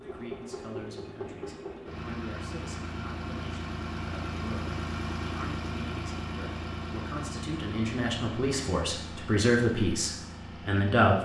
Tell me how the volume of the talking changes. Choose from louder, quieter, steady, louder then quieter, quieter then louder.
louder.